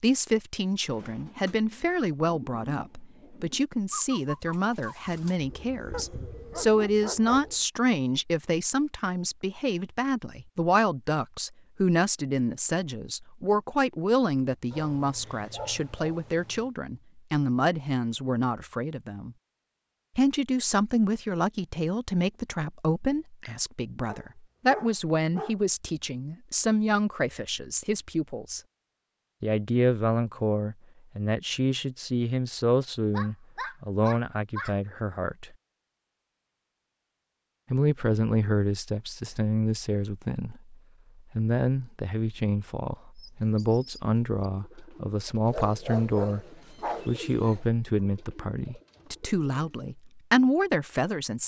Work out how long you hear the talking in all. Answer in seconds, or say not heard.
47 s.